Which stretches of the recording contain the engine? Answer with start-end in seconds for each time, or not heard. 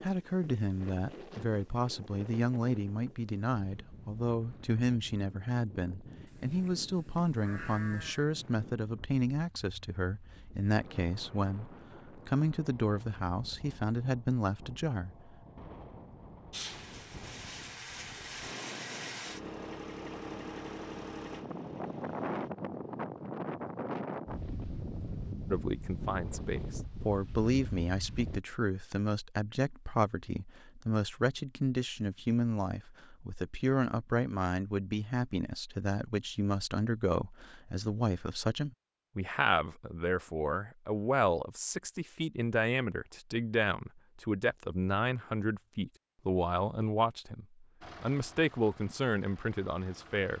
16.5-22.5, 47.8-50.3.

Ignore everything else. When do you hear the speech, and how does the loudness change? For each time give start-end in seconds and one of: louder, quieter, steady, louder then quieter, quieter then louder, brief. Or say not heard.
0.0-15.3 steady
25.5-50.3 steady.